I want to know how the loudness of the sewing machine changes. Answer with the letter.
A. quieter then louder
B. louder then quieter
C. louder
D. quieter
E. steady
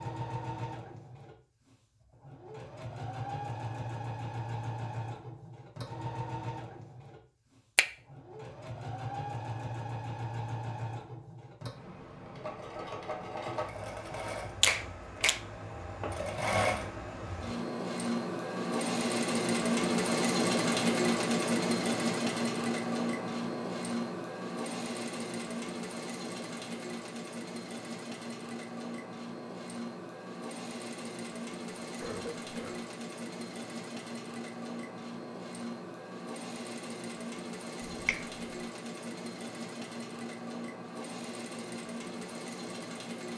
B.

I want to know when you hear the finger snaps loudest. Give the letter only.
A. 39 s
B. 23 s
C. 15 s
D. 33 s
C.